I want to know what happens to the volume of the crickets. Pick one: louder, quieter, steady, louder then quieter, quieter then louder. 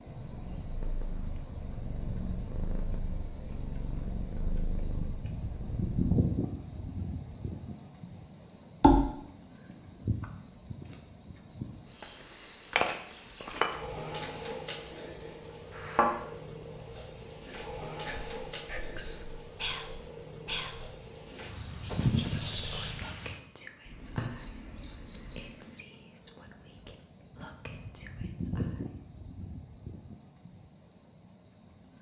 quieter.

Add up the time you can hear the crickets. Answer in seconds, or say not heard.
32 s.